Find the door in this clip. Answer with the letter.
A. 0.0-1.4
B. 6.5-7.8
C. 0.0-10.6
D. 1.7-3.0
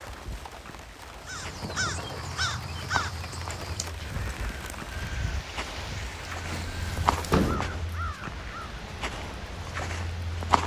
B.